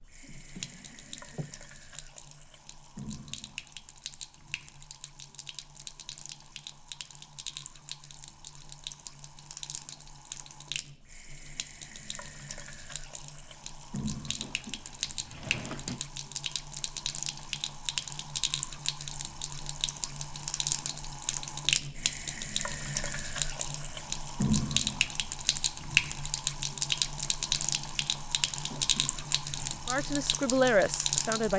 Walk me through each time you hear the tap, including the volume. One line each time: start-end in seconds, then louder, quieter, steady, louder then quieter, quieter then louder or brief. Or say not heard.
0.0-31.5 louder.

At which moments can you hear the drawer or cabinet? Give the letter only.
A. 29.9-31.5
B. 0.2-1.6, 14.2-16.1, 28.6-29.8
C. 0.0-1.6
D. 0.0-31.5
B.